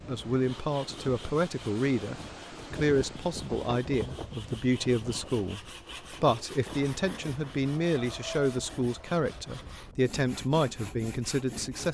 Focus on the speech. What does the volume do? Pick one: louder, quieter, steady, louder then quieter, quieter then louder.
steady.